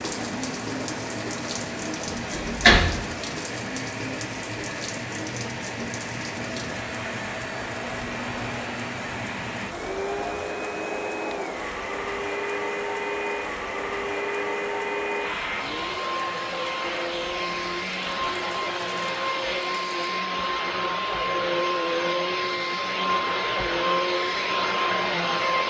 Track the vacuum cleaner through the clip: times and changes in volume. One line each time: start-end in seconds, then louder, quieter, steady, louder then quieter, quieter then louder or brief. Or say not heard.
0.0-25.6 louder.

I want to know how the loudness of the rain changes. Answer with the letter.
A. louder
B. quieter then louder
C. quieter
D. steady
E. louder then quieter
C.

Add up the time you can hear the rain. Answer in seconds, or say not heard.
20 s.